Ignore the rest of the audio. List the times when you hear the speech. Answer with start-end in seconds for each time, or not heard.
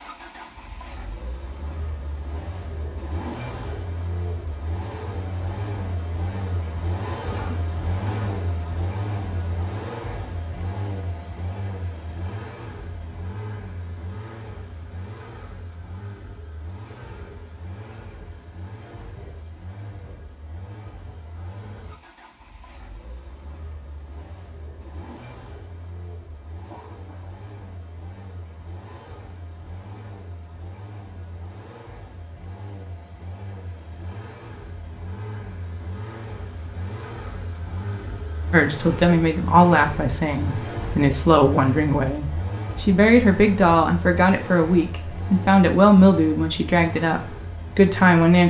38.5-48.4.